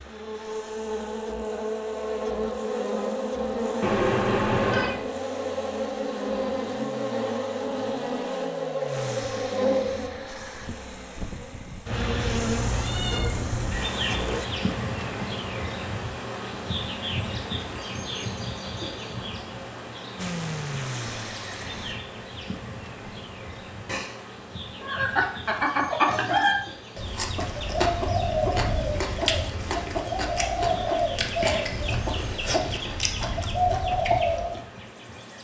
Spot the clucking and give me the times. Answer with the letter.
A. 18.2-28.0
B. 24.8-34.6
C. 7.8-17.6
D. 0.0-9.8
B.